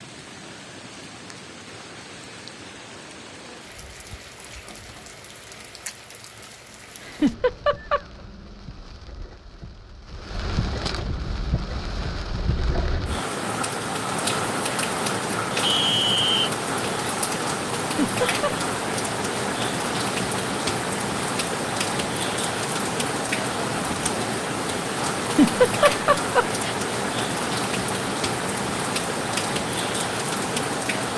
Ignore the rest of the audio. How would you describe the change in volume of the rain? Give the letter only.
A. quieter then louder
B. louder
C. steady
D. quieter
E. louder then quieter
B.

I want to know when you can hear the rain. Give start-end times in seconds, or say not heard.
0.0-31.1.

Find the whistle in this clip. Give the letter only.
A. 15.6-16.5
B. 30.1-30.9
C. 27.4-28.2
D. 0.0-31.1
A.